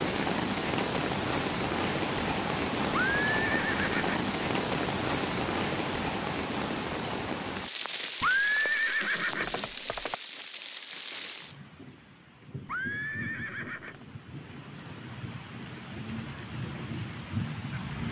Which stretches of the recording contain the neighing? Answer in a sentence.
You can hear the neighing from 2.9 to 4.2 s, from 8.2 to 10.2 s and from 12.7 to 14.1 s.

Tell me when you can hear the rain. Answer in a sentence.
The rain can be heard from 0.0 to 18.0 s.